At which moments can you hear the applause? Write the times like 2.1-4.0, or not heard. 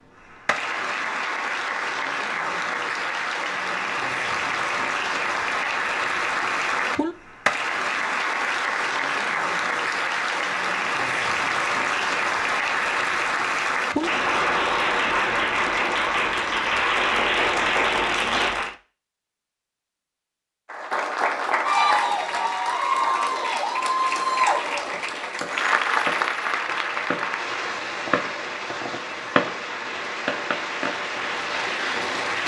0.1-18.8, 20.6-32.4.